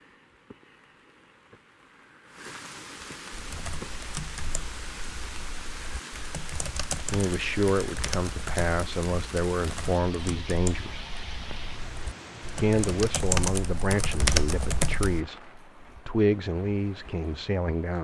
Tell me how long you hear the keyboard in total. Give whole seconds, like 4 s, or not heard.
12 s.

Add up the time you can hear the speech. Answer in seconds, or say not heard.
9 s.